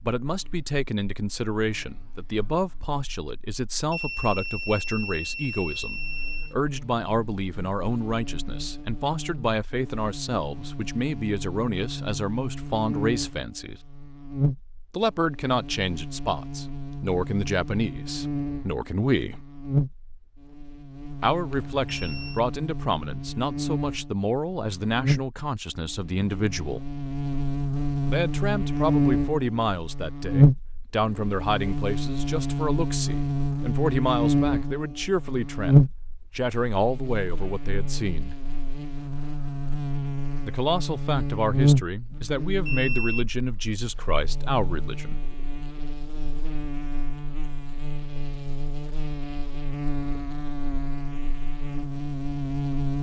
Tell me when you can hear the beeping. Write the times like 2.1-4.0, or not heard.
3.9-6.5, 21.5-22.4, 42.6-43.2.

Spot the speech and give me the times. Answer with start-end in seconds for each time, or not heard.
0.1-13.8, 14.9-19.4, 21.2-26.9, 28.1-38.4, 40.5-45.2.